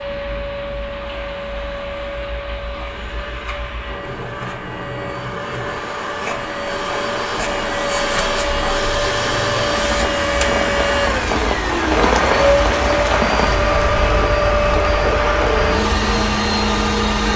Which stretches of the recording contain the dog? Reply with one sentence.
You can't hear the dog here.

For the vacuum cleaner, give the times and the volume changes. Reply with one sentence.
You can hear the vacuum cleaner from 0.0 to 17.3 s, getting louder.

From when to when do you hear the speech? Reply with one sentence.
You can't hear the speech here.